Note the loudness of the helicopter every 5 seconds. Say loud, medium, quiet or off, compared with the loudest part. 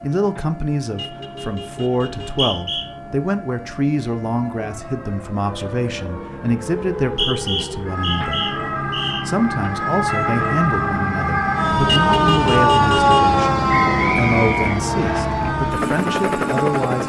quiet, medium, loud, loud.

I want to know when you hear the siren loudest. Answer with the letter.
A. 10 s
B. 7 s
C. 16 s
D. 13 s
D.